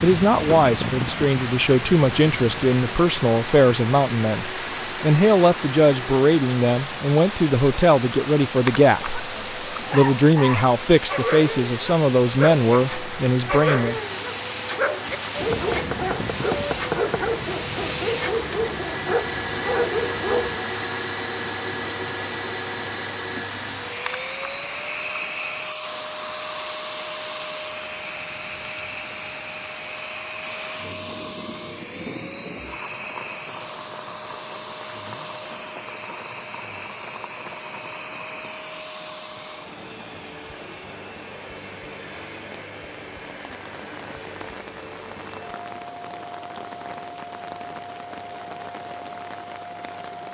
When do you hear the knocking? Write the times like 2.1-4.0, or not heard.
15.5-17.2.